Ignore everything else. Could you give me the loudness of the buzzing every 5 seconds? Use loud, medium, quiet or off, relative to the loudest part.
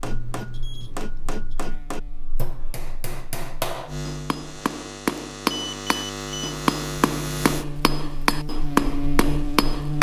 medium, loud.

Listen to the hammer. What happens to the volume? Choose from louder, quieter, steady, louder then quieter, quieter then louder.
louder.